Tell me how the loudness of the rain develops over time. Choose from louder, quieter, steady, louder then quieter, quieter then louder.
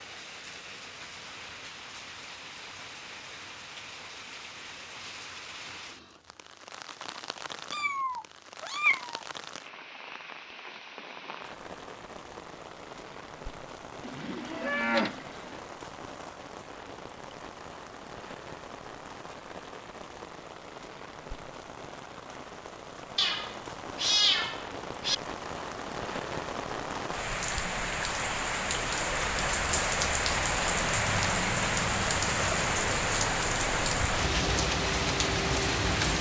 louder.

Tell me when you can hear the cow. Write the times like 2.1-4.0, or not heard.
14.0-15.6.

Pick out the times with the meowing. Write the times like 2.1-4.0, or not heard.
7.7-9.2, 23.1-25.1.